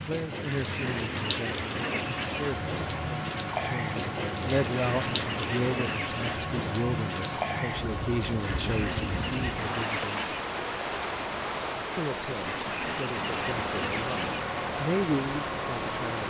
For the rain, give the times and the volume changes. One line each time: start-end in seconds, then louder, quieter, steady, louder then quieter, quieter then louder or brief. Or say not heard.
0.0-16.2 steady.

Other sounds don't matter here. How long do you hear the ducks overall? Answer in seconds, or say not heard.
8 s.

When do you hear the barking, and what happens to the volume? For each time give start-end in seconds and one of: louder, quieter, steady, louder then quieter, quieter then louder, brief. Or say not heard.
not heard.